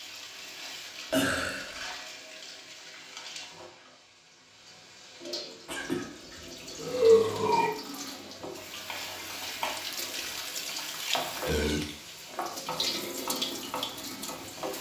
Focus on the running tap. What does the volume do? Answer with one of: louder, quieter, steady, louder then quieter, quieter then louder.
louder.